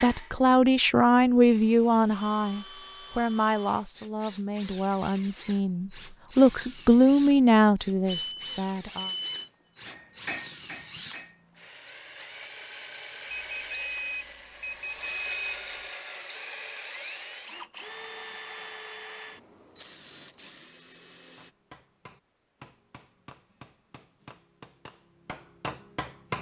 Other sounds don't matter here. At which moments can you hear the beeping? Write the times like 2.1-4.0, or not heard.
8.1-9.5, 13.3-15.8.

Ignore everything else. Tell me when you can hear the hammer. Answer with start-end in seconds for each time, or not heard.
9.8-11.4, 21.4-26.3.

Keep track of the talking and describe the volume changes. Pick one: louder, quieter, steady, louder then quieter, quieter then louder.
quieter then louder.